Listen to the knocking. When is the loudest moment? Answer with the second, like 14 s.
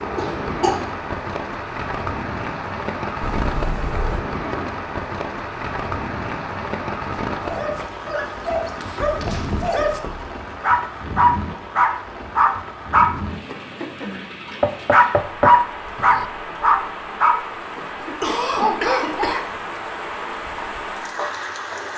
15 s.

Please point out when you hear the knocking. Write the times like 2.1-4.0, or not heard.
3.2-4.2, 9.0-10.3, 14.6-16.2.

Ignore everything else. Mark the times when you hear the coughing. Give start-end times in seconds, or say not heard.
0.1-0.8, 18.0-19.4.